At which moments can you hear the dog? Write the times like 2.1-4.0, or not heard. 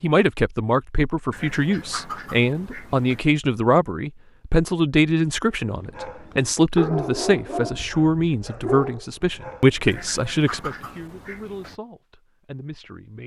5.5-9.9.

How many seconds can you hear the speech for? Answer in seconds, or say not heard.
13 s.